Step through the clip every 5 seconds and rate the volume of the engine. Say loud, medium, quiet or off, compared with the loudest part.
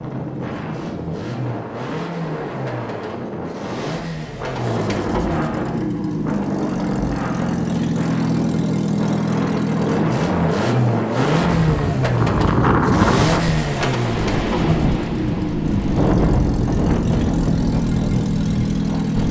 medium, loud, loud, loud.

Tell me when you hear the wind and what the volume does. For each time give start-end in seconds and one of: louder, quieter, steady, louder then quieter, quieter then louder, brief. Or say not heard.
0.0-19.2 louder.